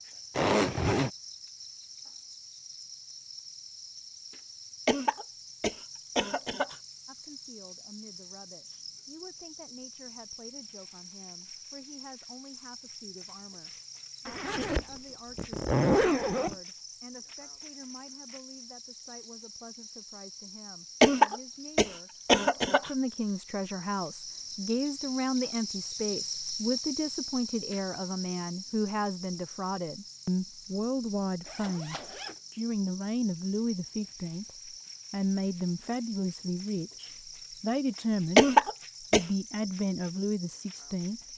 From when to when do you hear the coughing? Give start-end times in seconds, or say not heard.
4.8-6.8, 21.0-22.9, 38.4-39.2.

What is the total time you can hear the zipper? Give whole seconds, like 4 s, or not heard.
4 s.